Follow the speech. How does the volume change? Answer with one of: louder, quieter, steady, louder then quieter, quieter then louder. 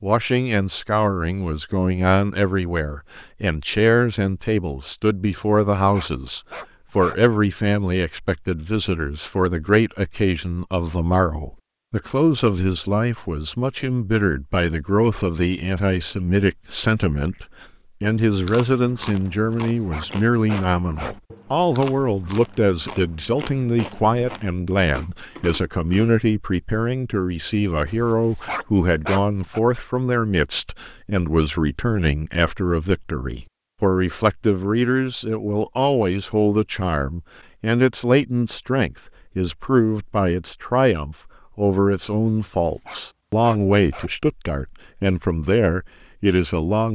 steady.